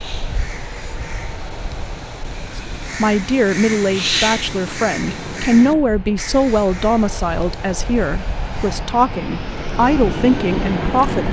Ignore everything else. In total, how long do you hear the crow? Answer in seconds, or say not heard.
9 s.